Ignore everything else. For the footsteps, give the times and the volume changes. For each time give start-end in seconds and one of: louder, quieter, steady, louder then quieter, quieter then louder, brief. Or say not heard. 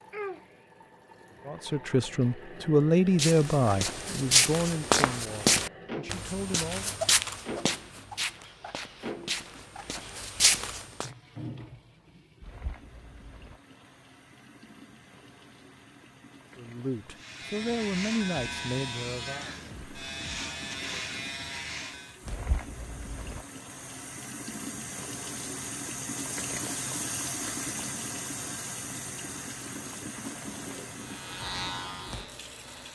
3.1-11.1 quieter then louder.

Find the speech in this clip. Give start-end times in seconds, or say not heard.
1.4-7.0, 16.6-19.5.